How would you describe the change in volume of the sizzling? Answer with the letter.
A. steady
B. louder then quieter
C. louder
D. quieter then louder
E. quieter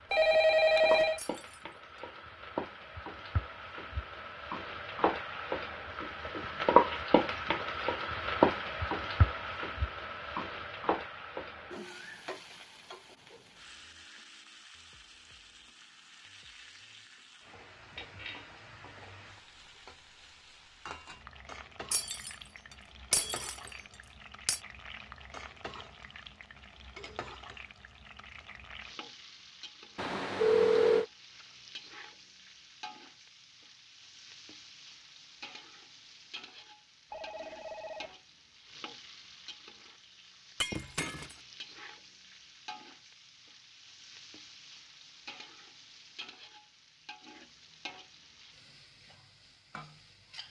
E.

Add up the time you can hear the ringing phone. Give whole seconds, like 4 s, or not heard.
3 s.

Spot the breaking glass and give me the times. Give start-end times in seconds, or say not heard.
1.1-1.6, 21.9-22.4, 23.1-24.6, 40.6-41.4.